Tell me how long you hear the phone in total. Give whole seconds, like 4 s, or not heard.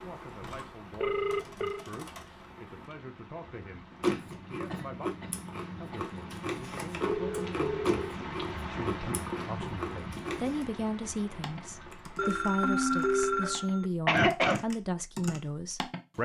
4 s.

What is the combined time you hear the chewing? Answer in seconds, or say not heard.
7 s.